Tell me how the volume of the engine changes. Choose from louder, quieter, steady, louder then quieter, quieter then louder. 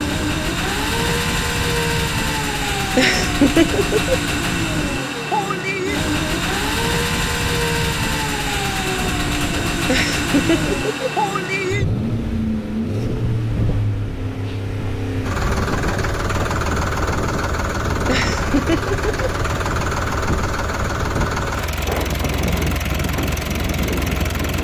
steady.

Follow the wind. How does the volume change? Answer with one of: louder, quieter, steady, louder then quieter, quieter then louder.
steady.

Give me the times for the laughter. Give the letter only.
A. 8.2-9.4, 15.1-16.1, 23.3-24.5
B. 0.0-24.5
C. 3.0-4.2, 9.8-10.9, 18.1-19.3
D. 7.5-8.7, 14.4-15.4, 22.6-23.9
C.